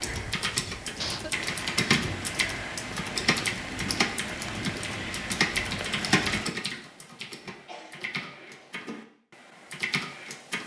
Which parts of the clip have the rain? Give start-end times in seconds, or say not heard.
0.0-6.5.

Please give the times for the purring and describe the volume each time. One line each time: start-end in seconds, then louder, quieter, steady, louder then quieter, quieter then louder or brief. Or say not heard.
not heard.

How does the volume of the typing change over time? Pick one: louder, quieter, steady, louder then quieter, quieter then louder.
quieter.